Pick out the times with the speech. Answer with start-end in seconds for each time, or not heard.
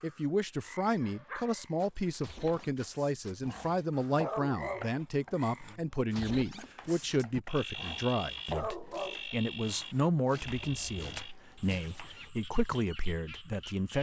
0.0-13.9.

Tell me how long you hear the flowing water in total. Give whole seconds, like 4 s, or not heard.
not heard.